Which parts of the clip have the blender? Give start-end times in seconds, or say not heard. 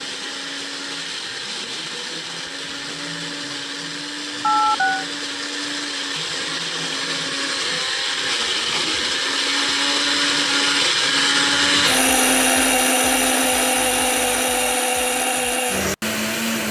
0.0-16.6.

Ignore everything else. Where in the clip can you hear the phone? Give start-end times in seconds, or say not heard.
4.4-5.0.